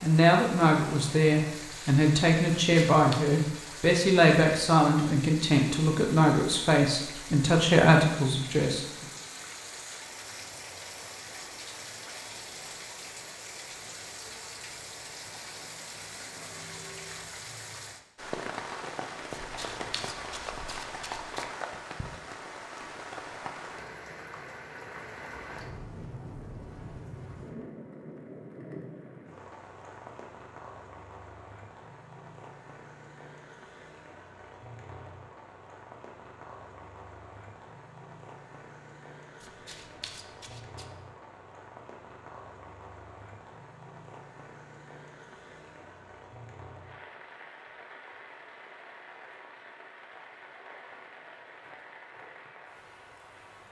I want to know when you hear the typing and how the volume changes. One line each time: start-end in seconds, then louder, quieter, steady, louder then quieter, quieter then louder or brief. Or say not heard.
not heard.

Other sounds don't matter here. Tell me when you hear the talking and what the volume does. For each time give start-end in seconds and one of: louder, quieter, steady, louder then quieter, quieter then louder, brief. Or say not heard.
0.0-9.1 steady.